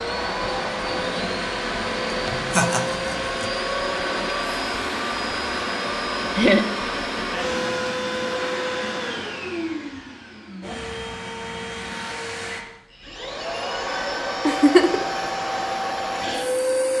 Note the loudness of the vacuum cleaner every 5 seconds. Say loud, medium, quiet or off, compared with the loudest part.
loud, loud, medium, loud.